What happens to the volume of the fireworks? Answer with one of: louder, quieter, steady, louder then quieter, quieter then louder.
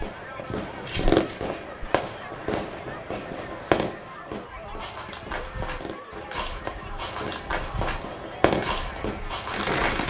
quieter then louder.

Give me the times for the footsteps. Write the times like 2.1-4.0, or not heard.
0.2-1.9, 4.5-10.0.